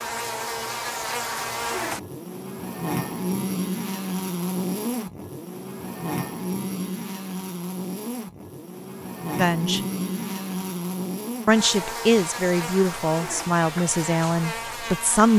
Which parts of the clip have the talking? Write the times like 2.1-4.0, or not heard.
9.3-9.8, 11.4-15.3.